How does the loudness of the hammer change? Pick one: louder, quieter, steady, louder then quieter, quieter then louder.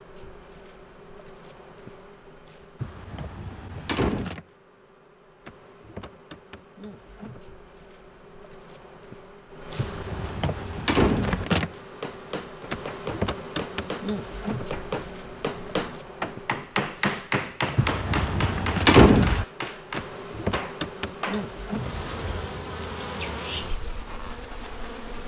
louder then quieter.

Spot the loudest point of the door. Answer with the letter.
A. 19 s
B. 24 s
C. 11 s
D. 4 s
A.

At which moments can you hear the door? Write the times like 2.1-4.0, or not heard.
2.8-4.3, 9.8-11.4, 17.8-19.4.